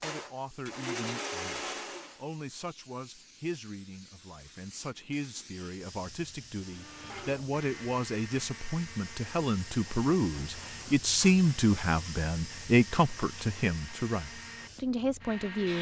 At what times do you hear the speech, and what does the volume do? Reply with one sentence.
You can hear the speech from 0.0 to 15.7 s, getting louder.